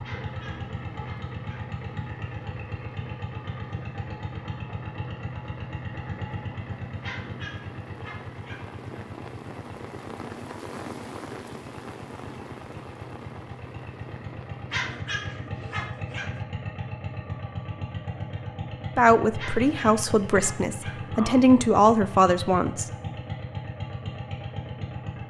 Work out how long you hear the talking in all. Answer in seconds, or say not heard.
4 s.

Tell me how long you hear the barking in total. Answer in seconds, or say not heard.
7 s.